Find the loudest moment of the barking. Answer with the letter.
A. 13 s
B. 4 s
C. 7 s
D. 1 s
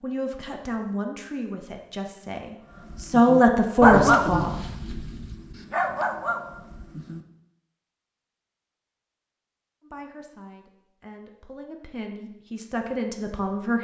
B.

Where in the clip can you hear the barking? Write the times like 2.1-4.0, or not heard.
2.7-7.2.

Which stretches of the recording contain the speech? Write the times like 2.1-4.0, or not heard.
0.0-4.5, 9.8-13.8.